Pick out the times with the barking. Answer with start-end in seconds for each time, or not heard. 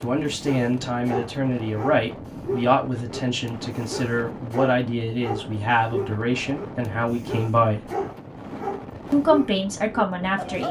0.0-10.6.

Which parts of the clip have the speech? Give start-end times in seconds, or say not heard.
0.0-7.8, 9.1-10.6.